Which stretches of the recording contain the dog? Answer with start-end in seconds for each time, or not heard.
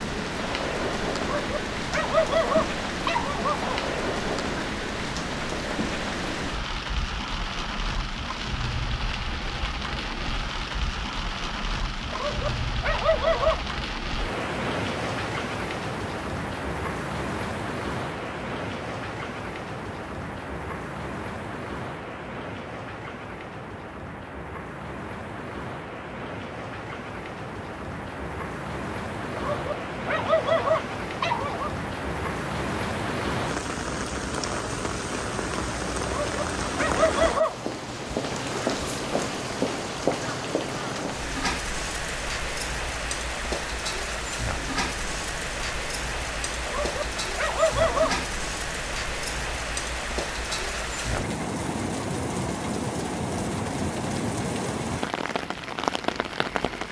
1.2-3.8, 12.1-13.8, 29.4-31.7, 36.0-37.6, 46.6-48.3.